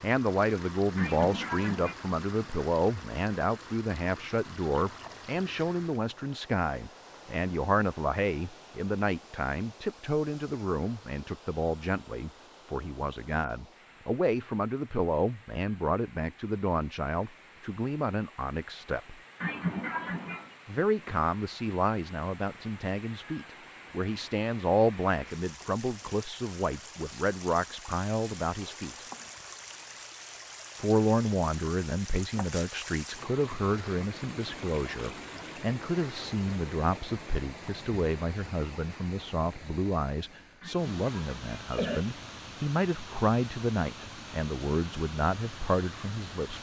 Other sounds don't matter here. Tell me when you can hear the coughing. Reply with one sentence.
The coughing can be heard from 0.9 to 1.9 s, from 19.4 to 20.5 s and from 40.6 to 42.1 s.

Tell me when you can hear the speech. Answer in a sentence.
The speech can be heard from 0.0 to 19.1 s, from 20.6 to 29.1 s and from 30.8 to 46.5 s.